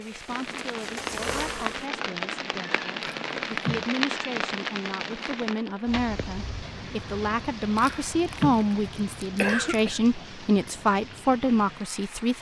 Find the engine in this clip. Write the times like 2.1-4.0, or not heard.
0.0-1.9.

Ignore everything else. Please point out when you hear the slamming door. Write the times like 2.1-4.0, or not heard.
not heard.